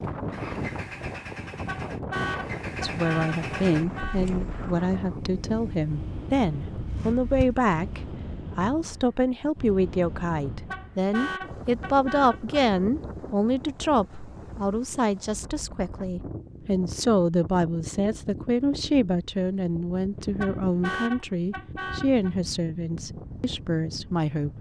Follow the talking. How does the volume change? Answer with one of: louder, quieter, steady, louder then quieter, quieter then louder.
steady.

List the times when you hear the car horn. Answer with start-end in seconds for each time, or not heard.
1.5-4.2, 10.5-12.6, 20.1-22.3.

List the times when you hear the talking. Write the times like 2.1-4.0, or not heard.
2.8-24.5.